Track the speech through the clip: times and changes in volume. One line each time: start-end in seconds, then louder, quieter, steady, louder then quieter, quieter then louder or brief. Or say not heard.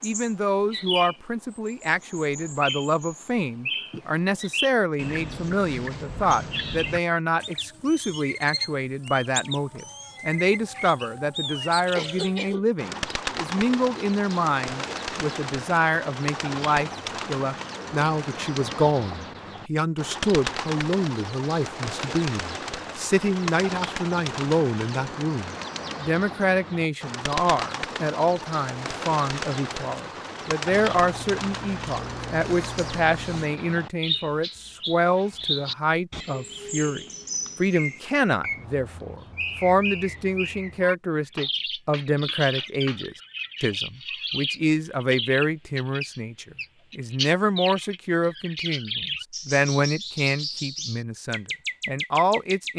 0.0-52.7 steady.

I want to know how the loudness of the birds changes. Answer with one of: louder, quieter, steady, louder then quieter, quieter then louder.
steady.